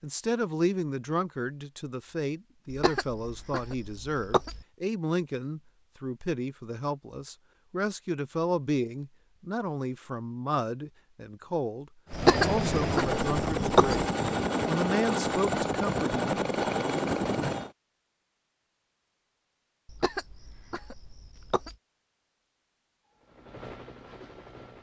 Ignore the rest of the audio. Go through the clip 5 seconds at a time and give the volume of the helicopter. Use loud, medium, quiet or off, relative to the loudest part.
off, off, loud, loud, quiet.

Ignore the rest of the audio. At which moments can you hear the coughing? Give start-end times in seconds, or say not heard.
2.7-4.7, 12.1-14.0, 19.9-21.8.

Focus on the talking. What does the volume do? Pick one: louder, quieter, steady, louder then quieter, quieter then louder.
steady.